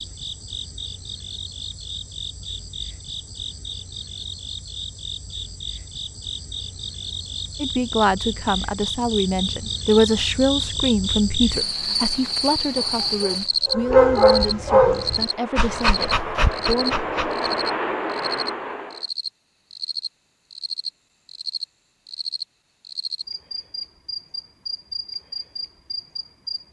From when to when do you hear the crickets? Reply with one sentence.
You can hear the crickets from 0.0 to 26.6 s.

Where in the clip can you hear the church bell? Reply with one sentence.
You can't hear the church bell here.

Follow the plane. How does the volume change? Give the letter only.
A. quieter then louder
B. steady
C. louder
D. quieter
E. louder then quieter
C.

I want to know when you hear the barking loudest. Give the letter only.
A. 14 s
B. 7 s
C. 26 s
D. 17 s
A.